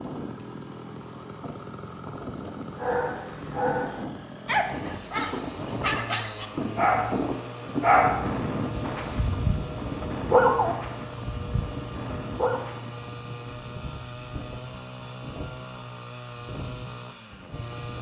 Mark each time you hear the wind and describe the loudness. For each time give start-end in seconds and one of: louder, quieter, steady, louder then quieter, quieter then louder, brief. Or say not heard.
0.0-17.9 louder then quieter.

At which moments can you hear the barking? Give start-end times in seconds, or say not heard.
2.8-12.6.